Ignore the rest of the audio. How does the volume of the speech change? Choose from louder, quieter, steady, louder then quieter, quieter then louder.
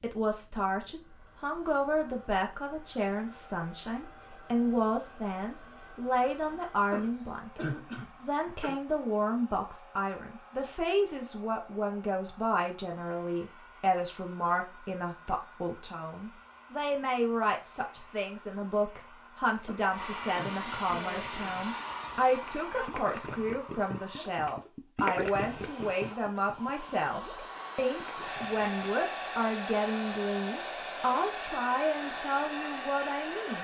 steady.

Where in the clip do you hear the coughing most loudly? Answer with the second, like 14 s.
8 s.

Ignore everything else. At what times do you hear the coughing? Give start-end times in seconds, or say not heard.
6.9-8.8, 19.6-21.6.